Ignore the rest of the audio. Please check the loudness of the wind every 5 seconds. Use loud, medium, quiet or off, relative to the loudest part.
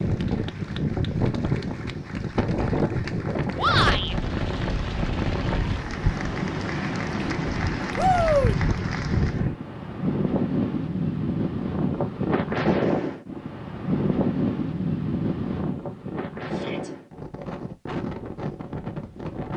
loud, loud, loud, medium.